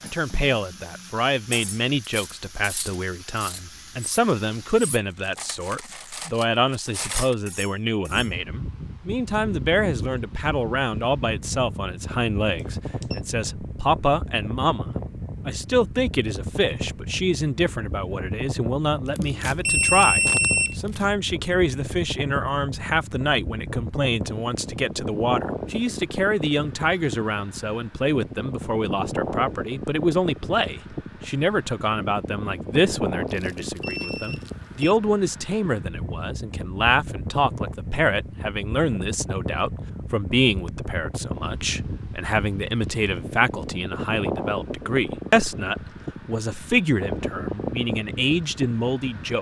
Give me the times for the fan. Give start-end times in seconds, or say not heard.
8.1-49.3.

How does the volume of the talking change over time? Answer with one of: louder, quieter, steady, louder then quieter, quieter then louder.
steady.